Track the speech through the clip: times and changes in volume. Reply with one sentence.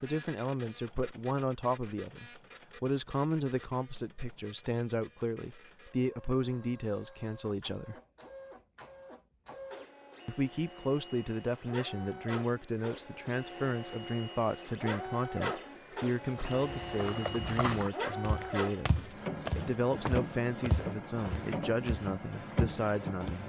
You can hear the speech from 0.0 to 8.0 s, at a steady volume; and from 10.2 to 23.4 s, at a steady volume.